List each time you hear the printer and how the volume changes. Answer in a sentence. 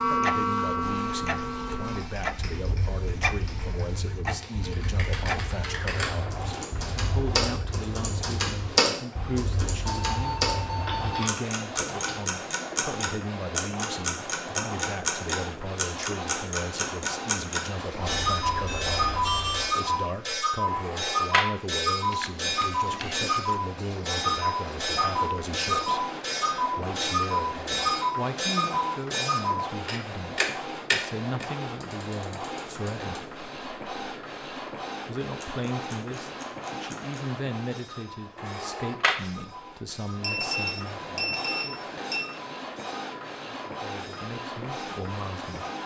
The printer can be heard from 0.0 to 45.8 s, at a steady volume.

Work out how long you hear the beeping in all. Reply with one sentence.
You can hear the beeping for 5 seconds altogether.